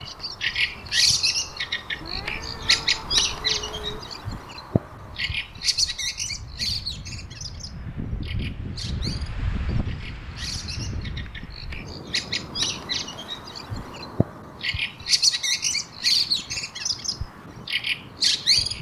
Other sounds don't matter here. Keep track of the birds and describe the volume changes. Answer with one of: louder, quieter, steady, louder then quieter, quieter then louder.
quieter then louder.